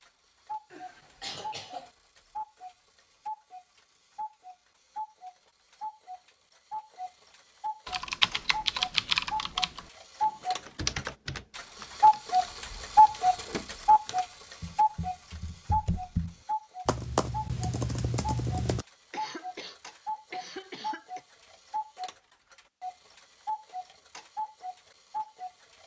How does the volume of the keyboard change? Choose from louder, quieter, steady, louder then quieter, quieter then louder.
quieter then louder.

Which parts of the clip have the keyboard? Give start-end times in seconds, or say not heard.
7.8-18.9.